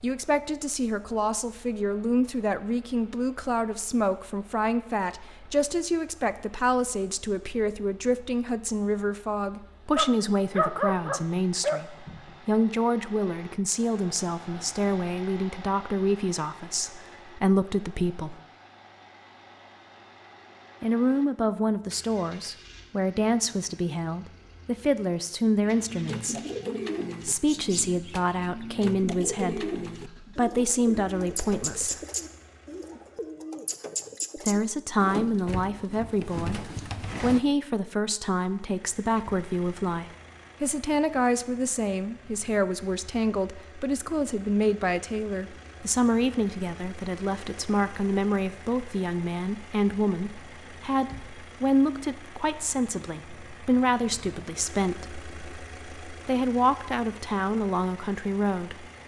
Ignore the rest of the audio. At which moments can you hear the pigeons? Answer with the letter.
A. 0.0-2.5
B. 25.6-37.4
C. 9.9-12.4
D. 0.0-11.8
B.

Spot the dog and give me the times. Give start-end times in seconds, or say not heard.
9.9-12.4.